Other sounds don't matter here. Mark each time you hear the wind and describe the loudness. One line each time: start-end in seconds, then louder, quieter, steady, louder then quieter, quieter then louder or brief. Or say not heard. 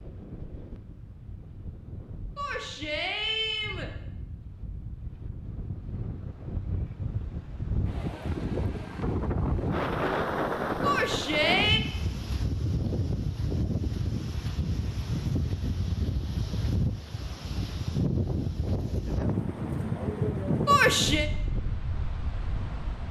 0.0-23.0 louder.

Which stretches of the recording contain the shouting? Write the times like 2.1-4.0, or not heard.
2.4-3.9, 10.8-11.8, 20.6-21.2.